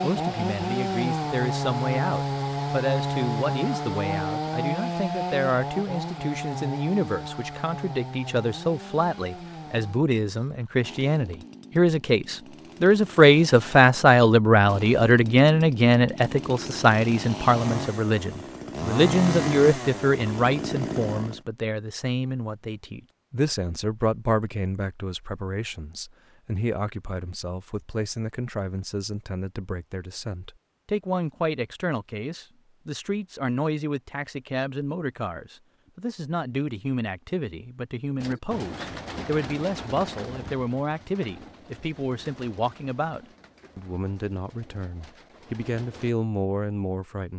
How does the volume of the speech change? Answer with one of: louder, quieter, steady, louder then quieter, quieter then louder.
louder then quieter.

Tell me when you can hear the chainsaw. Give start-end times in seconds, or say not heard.
0.0-21.4.